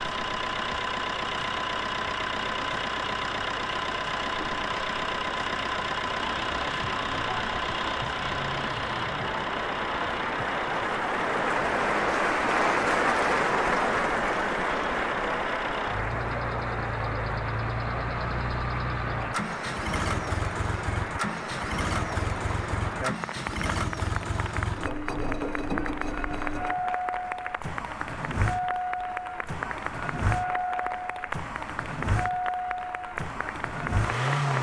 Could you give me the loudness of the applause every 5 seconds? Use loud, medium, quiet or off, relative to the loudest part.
quiet, medium, loud, medium, medium, medium, medium.